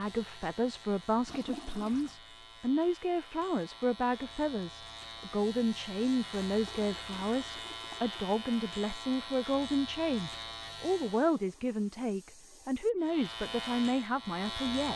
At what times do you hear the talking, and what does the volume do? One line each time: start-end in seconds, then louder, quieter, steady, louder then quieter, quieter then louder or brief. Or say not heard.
0.0-14.9 steady.